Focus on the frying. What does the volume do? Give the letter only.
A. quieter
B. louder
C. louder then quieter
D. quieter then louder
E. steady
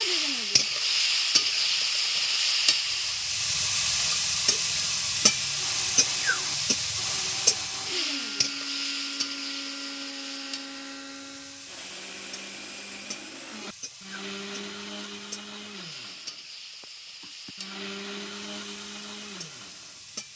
A.